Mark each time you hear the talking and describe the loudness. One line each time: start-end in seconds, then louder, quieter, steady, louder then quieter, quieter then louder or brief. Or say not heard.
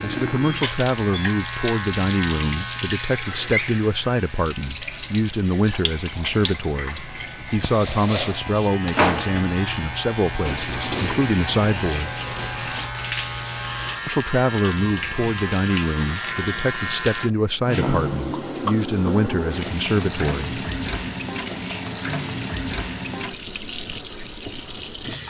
0.0-12.2 steady
14.1-21.1 steady.